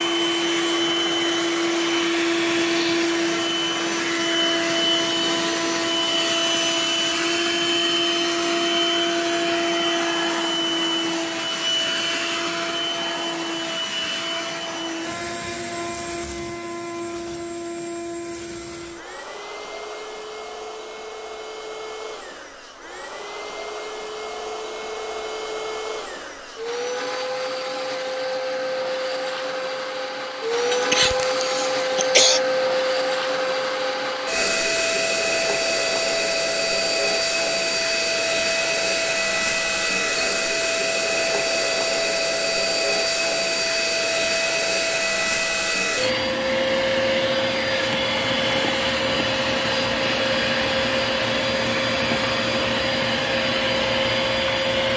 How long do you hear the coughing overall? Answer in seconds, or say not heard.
2 s.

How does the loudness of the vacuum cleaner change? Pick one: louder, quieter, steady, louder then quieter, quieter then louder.
quieter then louder.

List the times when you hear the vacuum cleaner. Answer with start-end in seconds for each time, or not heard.
0.0-54.9.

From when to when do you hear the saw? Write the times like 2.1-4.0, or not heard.
not heard.